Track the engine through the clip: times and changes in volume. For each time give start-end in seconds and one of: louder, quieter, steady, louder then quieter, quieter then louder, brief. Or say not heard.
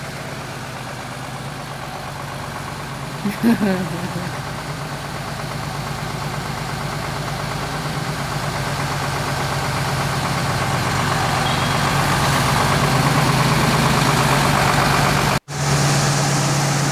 0.0-16.8 louder.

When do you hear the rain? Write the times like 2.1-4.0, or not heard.
not heard.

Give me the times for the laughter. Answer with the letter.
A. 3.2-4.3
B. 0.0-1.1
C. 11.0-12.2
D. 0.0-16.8
A.